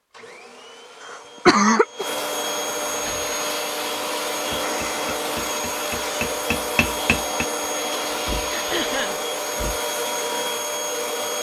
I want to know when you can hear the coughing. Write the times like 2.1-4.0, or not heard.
1.1-2.0, 8.5-9.2.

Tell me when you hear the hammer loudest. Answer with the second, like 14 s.
7 s.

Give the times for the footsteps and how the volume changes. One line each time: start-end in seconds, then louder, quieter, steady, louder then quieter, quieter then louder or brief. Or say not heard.
not heard.